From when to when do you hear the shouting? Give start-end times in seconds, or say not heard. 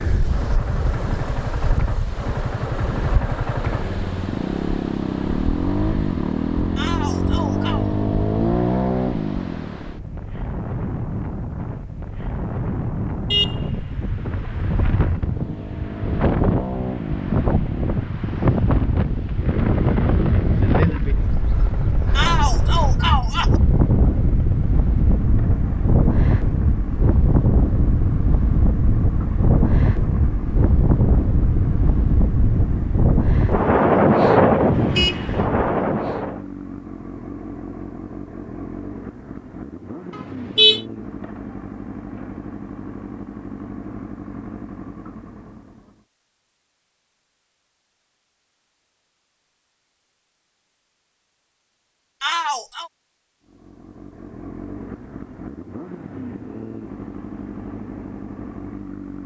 6.8-7.8, 22.1-23.6, 52.2-52.9.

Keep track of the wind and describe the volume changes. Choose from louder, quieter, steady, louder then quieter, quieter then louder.
louder.